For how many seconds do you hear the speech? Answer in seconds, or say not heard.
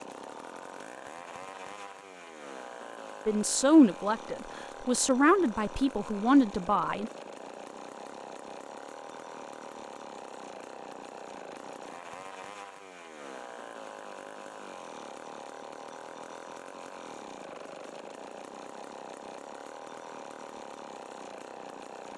4 s.